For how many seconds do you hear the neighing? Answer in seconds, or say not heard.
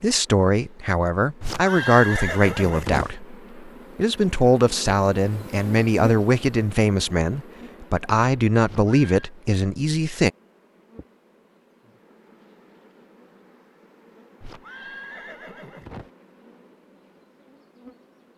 4 s.